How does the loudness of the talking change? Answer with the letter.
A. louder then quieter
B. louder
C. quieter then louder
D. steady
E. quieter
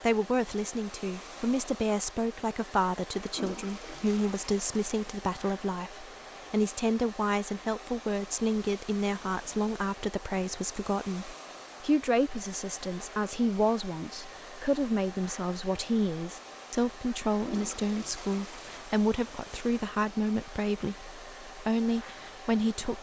D.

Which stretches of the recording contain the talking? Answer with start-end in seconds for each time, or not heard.
0.0-22.9.